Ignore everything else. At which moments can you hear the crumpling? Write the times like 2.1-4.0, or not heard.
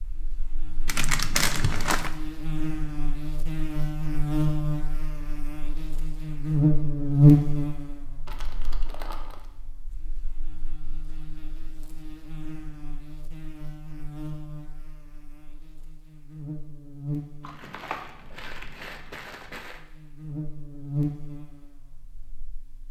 0.8-2.1, 8.2-9.4, 17.4-19.8.